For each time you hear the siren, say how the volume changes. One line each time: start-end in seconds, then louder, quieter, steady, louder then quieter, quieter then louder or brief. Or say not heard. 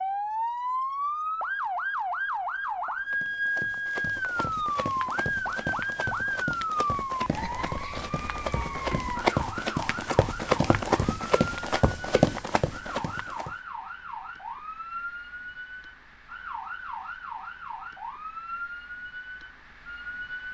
0.0-20.4 quieter.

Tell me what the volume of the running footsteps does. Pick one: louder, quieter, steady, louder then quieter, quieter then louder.
louder.